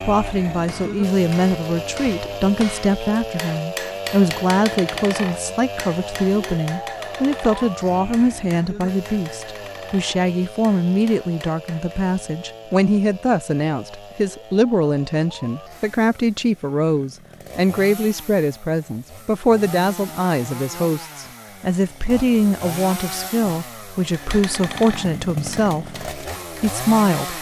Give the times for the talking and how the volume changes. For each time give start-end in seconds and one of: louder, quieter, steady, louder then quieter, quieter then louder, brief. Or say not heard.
0.0-27.3 steady.